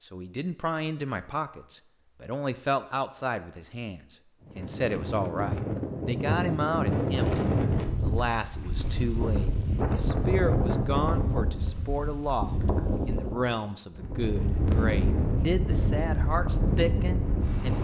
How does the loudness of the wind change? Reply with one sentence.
The loudness of the wind stays about the same.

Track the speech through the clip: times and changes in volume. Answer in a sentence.
You can hear the speech from 0.0 to 17.7 s, at a steady volume.